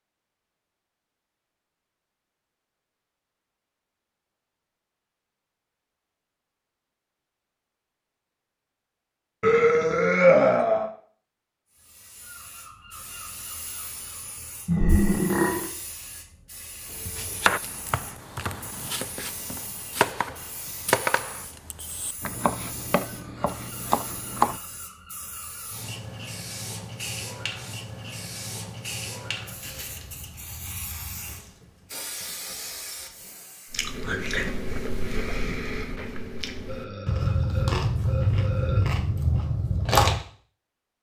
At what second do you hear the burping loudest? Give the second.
10 s.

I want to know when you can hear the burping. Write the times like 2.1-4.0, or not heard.
9.4-10.9, 14.7-15.7, 36.6-38.9.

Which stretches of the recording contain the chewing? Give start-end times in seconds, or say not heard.
33.7-40.2.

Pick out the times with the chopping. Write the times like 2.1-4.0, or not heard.
17.0-24.6.